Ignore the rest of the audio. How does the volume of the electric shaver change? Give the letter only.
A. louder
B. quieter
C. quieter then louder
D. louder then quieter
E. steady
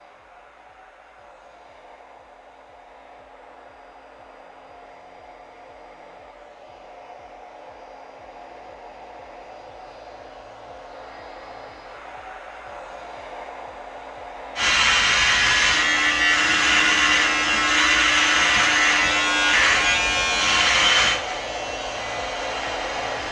B.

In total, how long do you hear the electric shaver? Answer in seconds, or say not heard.
9 s.